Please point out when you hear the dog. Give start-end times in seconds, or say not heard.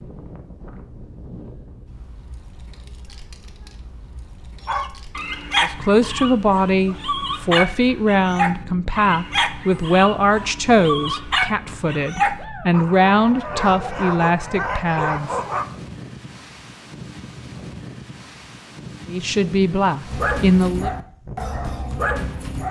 4.7-15.7, 20.1-22.6.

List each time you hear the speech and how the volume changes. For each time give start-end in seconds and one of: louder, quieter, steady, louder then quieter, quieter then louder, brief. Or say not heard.
5.6-15.3 steady
19.1-20.9 brief.